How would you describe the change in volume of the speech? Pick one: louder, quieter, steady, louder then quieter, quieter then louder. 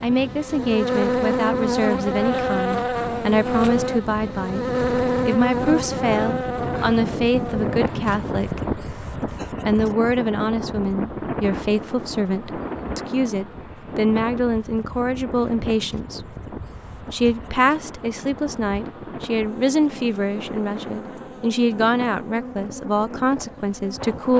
steady.